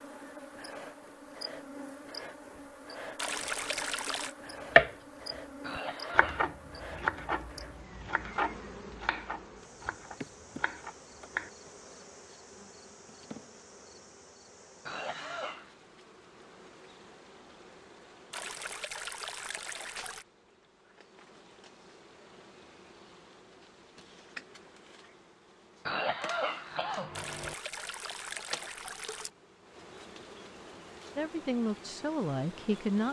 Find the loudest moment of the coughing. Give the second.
26 s.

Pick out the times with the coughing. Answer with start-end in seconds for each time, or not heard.
5.6-6.5, 14.8-15.8, 25.9-27.6.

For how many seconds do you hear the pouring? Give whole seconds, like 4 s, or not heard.
5 s.